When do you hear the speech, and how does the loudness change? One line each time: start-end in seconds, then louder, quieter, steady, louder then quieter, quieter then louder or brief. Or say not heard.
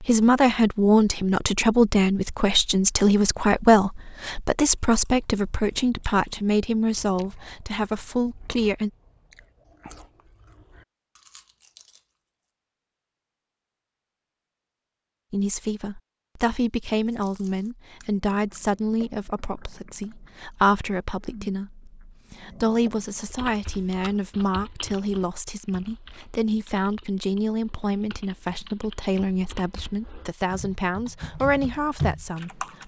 0.0-8.9 quieter
15.3-32.8 steady.